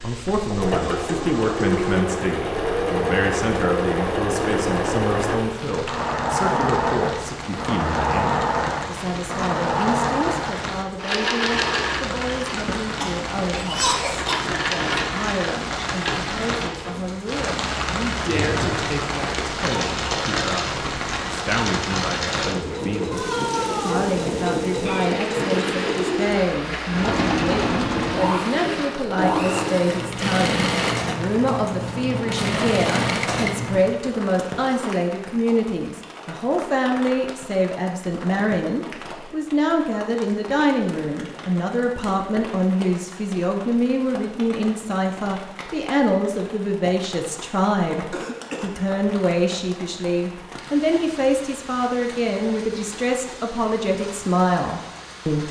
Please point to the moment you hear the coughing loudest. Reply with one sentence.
The loudest moment of the coughing is at 14 seconds.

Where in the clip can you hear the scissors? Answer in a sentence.
You can't hear the scissors here.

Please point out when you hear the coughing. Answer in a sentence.
You can hear the coughing from 12.6 to 14.6 s and from 48.1 to 49.0 s.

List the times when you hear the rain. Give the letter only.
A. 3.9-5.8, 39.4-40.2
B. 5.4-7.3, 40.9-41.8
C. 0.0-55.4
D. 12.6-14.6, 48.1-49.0
C.